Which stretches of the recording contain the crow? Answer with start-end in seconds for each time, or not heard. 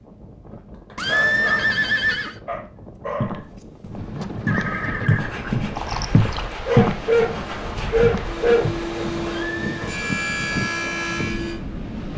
not heard.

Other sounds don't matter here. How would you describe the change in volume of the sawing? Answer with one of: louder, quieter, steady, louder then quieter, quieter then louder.
louder.